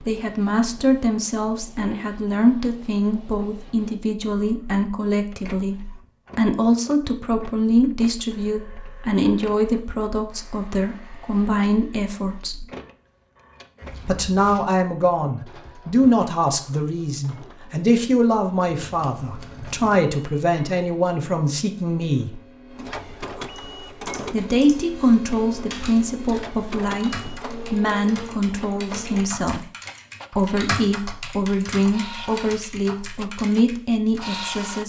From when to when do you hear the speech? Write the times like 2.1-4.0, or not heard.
0.0-12.7, 14.1-22.4, 24.3-29.6, 30.4-34.8.